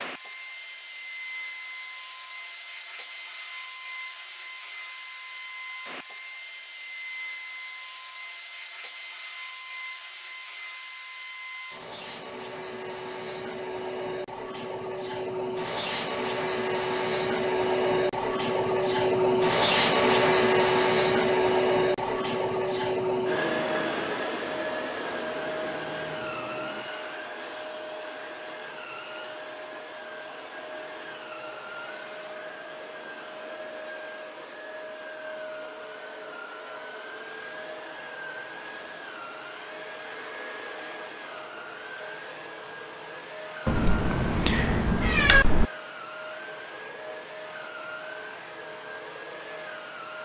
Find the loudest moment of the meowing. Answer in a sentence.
The volume of the meowing peaks at 45 seconds.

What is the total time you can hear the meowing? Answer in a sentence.
The meowing can be heard for 2 seconds in total.